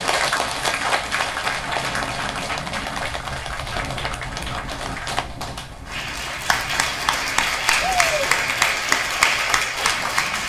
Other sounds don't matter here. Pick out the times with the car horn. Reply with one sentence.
You can't hear the car horn here.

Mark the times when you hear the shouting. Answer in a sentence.
The shouting can be heard from 7.8 to 8.3 s.